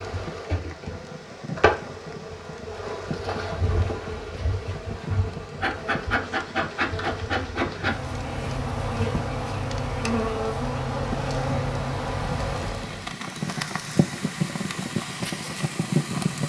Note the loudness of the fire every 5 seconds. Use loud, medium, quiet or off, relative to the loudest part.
quiet, quiet, medium, loud.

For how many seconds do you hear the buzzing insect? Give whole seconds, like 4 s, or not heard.
13 s.